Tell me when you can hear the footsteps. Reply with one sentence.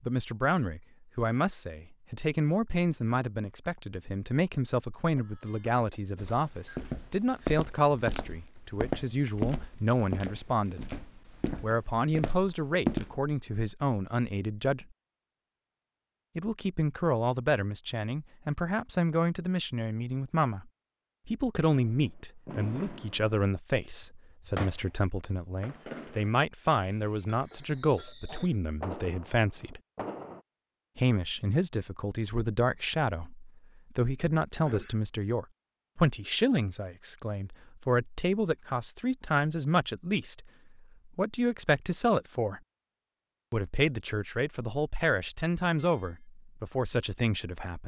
The footsteps can be heard from 6.2 to 13.2 s.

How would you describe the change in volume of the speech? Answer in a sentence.
The volume of the speech stays about the same.